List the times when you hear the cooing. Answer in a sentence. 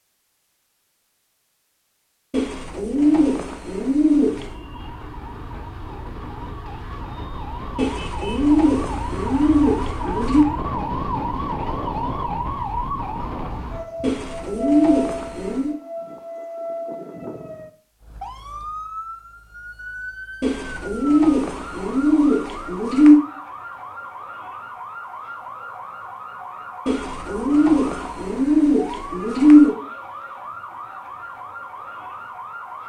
The cooing can be heard from 2.3 to 4.5 s, from 7.8 to 10.4 s, from 14.0 to 15.8 s, from 20.4 to 23.2 s and from 26.9 to 29.8 s.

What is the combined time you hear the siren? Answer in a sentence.
The siren can be heard for 29 seconds in total.